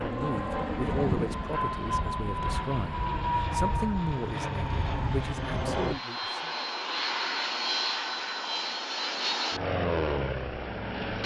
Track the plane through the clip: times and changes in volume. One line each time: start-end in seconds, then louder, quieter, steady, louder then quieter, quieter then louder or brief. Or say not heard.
0.0-11.2 steady.